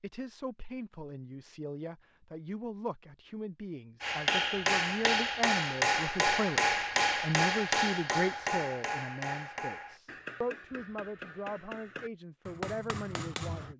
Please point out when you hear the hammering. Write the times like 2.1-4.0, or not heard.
4.0-13.7.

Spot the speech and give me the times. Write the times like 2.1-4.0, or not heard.
0.0-13.7.